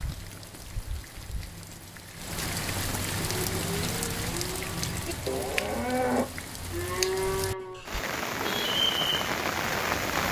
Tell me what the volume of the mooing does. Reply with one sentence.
The loudness of the mooing goes up.